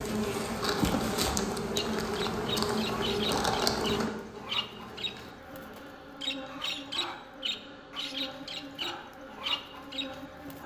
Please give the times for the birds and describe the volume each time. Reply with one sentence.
You can hear the birds from 2.0 to 10.6 s, at a steady volume.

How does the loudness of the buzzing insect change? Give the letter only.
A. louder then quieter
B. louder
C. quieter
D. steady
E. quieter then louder
C.